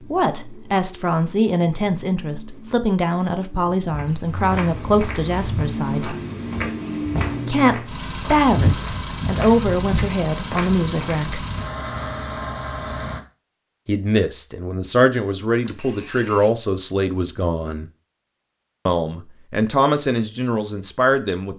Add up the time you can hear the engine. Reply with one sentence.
You can hear the engine for 13 seconds altogether.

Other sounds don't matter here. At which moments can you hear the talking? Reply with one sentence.
The talking can be heard from 0.1 to 6.2 s, from 7.5 to 11.4 s, from 13.8 to 17.9 s and from 18.9 to 21.5 s.